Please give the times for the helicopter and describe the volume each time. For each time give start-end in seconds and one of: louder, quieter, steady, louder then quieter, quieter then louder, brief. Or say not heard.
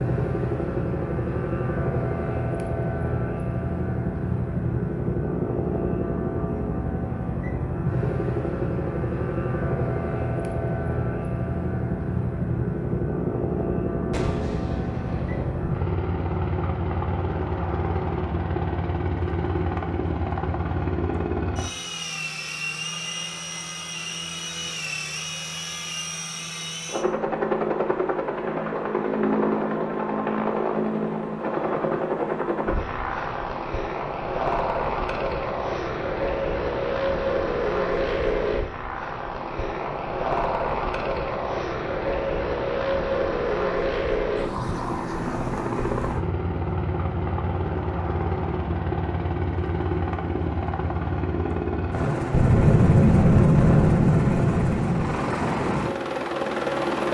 0.0-57.0 steady.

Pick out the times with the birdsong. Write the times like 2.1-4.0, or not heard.
not heard.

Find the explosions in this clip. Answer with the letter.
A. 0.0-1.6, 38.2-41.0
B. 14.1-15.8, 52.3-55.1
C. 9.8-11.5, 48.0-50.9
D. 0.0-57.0
B.